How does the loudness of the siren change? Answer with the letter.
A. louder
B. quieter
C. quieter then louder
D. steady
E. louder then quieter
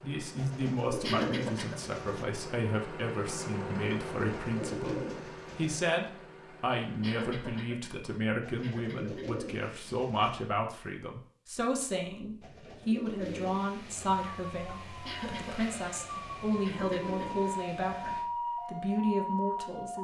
A.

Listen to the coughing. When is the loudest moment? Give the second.
1 s.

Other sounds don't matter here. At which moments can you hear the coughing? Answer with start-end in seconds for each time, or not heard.
1.0-1.8, 7.0-9.4, 15.1-17.5.